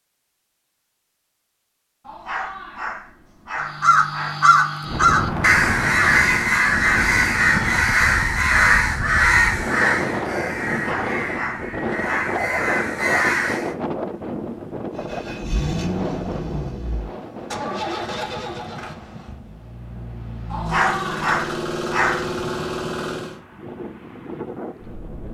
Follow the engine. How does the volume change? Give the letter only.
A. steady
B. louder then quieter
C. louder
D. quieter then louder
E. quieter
D.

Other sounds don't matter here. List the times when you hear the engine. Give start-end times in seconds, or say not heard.
14.9-23.4.